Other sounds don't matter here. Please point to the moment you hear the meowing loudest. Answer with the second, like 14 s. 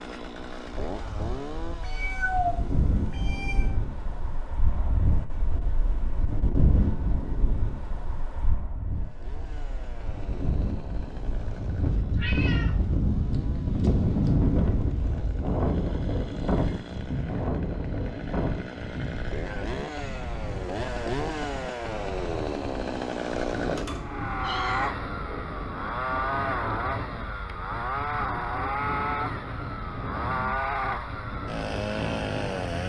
2 s.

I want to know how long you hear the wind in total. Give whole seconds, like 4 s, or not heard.
33 s.